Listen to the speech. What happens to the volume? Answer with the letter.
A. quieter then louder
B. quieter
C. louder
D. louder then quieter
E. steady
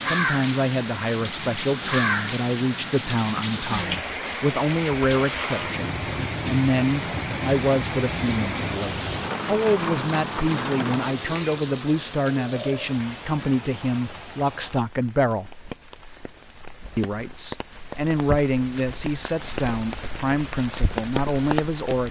E.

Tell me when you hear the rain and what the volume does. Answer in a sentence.
You can hear the rain from 0.0 to 22.0 s, getting quieter then louder.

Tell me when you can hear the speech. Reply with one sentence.
You can hear the speech from 0.0 to 15.5 s and from 16.9 to 22.0 s.